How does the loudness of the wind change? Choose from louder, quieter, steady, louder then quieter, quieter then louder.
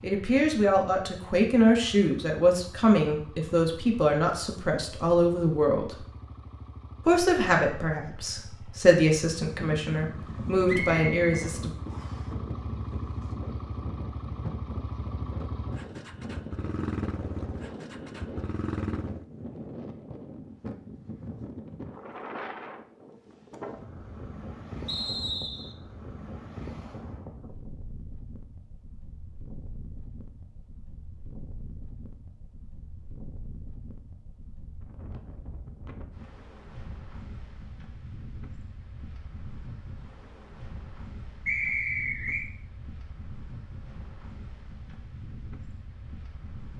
quieter.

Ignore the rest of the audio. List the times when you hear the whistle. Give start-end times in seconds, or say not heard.
10.7-12.2, 24.9-25.8, 41.5-42.5.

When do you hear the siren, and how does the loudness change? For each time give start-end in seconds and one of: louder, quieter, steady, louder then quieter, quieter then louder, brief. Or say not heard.
not heard.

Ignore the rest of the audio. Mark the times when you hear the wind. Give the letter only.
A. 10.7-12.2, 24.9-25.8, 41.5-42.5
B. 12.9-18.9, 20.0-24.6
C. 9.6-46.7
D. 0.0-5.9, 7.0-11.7
C.